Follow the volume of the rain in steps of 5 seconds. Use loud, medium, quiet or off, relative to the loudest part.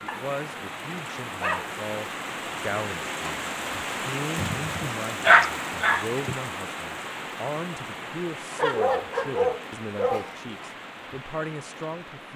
loud, loud, medium.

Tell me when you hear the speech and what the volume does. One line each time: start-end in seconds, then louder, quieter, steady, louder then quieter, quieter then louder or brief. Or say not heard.
0.0-12.3 steady.